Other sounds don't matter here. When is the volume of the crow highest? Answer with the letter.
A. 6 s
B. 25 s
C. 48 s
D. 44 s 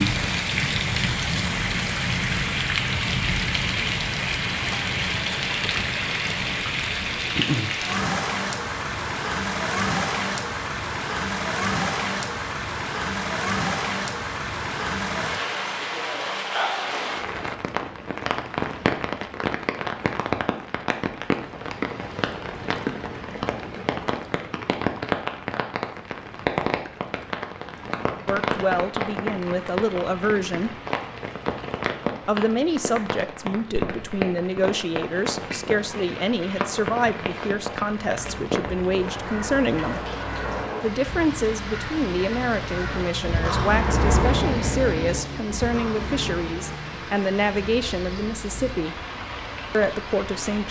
D.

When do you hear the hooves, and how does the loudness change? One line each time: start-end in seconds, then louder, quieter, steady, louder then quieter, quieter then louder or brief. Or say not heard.
not heard.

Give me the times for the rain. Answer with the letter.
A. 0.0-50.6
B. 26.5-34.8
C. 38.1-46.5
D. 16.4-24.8
A.